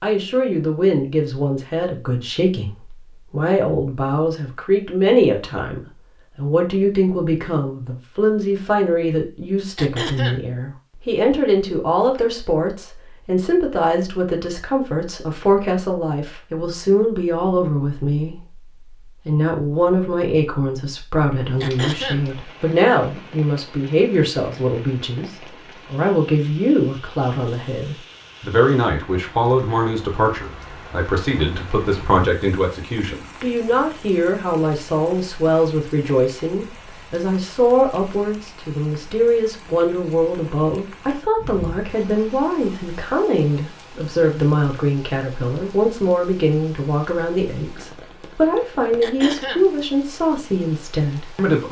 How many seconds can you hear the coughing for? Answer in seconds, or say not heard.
2 s.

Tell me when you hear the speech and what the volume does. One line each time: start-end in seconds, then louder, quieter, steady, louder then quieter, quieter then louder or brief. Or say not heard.
0.0-51.6 steady.